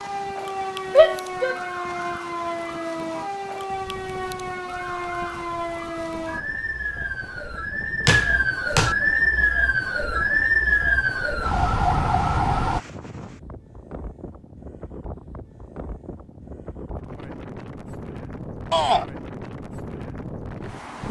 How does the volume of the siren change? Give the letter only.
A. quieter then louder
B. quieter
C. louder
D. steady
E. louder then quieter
C.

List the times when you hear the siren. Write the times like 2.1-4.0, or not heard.
0.0-12.8.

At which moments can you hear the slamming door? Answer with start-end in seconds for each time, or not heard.
8.1-8.9.